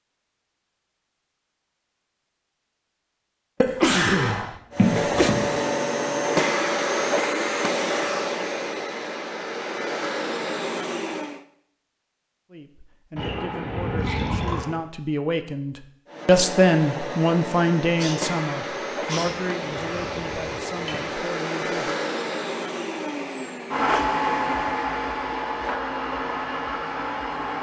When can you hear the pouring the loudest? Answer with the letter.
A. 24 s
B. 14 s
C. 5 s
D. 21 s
C.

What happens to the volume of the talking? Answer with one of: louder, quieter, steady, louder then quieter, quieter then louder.
louder then quieter.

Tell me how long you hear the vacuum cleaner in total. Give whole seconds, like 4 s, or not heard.
18 s.